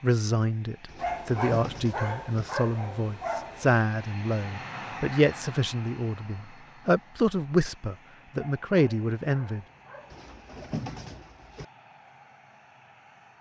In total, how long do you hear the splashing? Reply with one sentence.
The splashing can't be heard in this clip.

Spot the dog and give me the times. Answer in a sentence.
The dog can be heard from 0.9 to 3.8 s and from 8.3 to 10.3 s.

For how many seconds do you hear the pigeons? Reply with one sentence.
You can hear the pigeons for 3 seconds altogether.